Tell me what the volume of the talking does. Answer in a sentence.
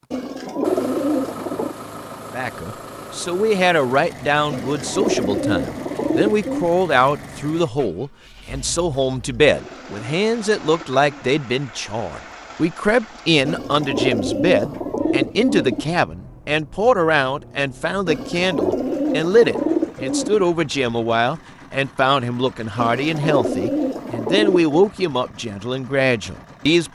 The loudness of the talking stays about the same.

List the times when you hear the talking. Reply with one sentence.
The talking can be heard from 2.3 to 26.8 s.